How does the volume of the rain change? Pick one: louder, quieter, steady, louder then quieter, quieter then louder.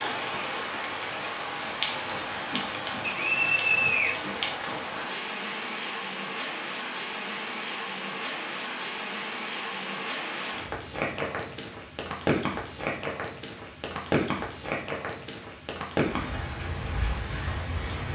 steady.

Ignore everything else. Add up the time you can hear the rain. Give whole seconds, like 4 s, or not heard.
18 s.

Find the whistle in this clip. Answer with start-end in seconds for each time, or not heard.
3.0-4.2.